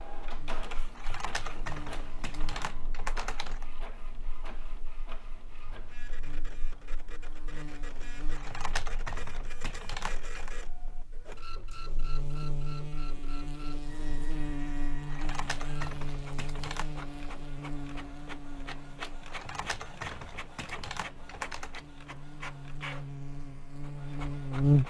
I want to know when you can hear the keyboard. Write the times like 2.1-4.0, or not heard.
0.9-3.7, 8.3-10.5, 15.1-16.9, 19.2-21.8.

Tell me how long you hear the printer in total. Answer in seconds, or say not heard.
25 s.